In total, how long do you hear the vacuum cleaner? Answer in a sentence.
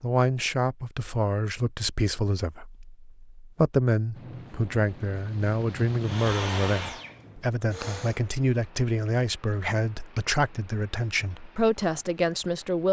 You can hear the vacuum cleaner for 2 seconds altogether.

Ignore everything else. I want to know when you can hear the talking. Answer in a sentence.
You can hear the talking from 0.0 to 12.8 s.